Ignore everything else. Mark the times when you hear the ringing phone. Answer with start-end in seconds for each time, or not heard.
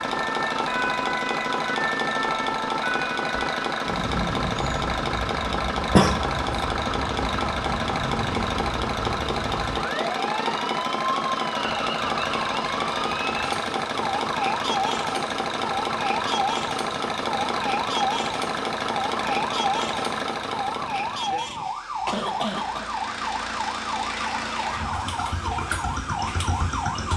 not heard.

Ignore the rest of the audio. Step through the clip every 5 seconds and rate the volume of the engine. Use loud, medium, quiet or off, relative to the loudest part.
loud, loud, loud, loud, medium, medium.